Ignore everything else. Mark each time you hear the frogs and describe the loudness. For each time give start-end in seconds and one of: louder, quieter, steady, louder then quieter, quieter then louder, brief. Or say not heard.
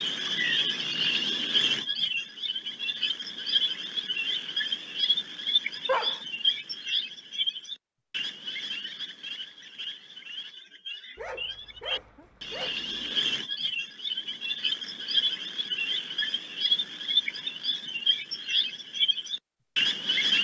0.0-20.4 quieter then louder.